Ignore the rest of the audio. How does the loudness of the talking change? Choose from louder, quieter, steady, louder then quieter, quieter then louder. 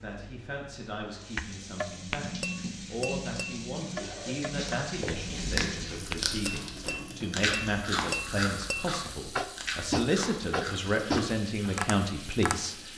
louder.